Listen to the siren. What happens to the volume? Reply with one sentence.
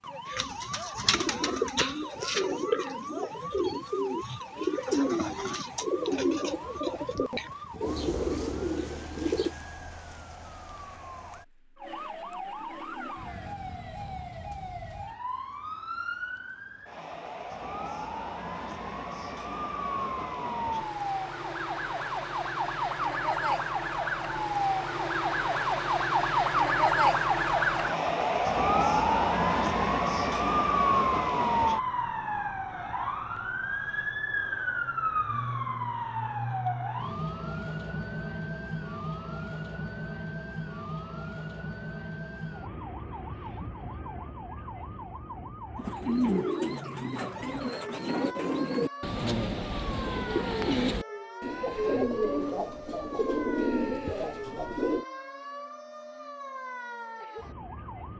The volume of the siren goes up, then down.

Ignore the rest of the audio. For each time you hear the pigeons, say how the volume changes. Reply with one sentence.
The pigeons can be heard from 0.2 to 9.6 s, at a steady volume; and from 45.8 to 55.0 s, at a steady volume.